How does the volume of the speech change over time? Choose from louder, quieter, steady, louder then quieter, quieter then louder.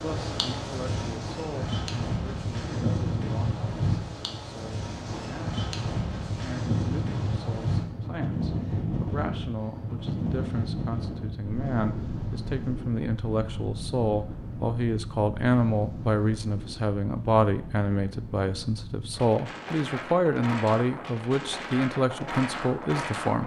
louder.